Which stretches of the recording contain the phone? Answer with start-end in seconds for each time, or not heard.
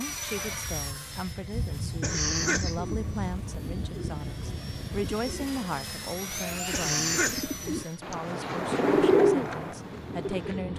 not heard.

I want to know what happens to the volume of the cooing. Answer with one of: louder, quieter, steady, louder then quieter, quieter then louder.
louder.